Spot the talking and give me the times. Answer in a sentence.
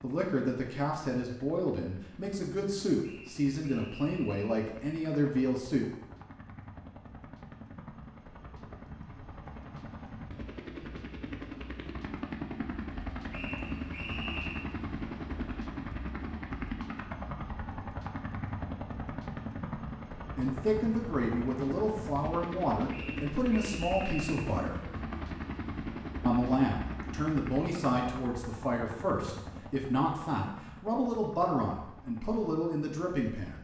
The talking can be heard from 0.0 to 5.8 s, from 20.4 to 24.8 s and from 26.2 to 33.5 s.